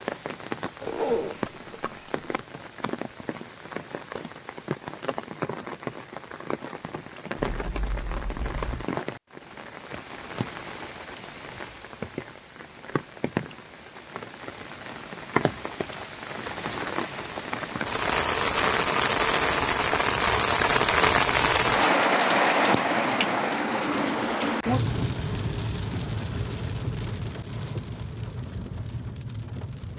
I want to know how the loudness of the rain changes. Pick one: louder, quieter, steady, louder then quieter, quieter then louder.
louder then quieter.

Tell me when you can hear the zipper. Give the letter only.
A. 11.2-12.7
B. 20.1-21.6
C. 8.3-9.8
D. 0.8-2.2
D.